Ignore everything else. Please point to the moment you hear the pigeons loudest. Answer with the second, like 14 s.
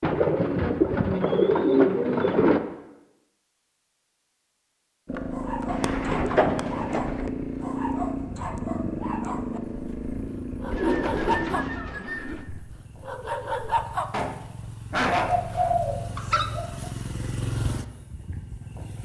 2 s.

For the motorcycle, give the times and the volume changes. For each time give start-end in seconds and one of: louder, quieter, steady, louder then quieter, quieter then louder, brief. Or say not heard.
5.0-18.9 quieter then louder.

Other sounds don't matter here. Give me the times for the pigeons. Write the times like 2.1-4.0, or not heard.
0.0-2.6, 5.7-7.2, 10.7-12.4, 15.2-16.9.